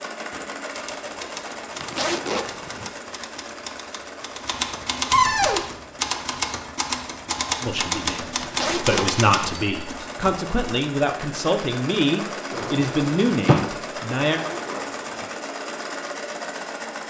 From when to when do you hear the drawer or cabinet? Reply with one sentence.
The drawer or cabinet can be heard from 5.1 to 5.7 s and from 12.5 to 13.7 s.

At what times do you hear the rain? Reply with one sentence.
The rain can't be heard in this clip.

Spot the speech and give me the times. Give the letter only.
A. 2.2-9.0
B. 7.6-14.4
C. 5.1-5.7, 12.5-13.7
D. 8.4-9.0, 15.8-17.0
B.